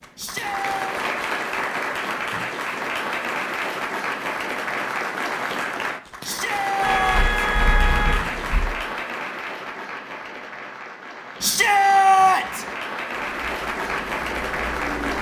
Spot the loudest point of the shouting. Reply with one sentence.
The loudest moment of the shouting is at 12 seconds.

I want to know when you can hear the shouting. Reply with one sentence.
The shouting can be heard from 0.1 to 0.8 s, from 6.2 to 7.3 s and from 11.4 to 12.7 s.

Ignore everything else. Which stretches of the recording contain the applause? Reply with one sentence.
You can hear the applause from 0.0 to 15.1 s.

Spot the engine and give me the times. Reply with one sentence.
You can hear the engine from 13.2 to 15.1 s.